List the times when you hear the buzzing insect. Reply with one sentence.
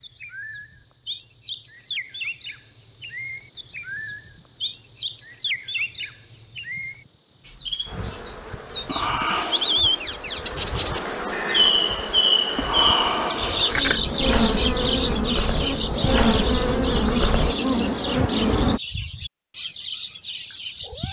You can hear the buzzing insect from 0.0 to 18.8 s.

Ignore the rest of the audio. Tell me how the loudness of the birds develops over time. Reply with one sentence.
The volume of the birds goes up, then down.